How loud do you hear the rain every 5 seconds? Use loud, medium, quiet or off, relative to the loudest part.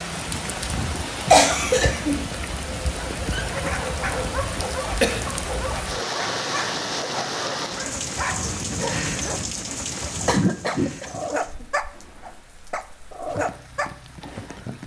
loud, loud, medium.